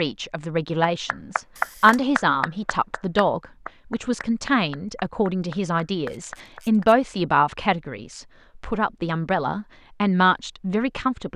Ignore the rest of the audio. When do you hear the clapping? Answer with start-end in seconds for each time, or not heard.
1.1-6.8.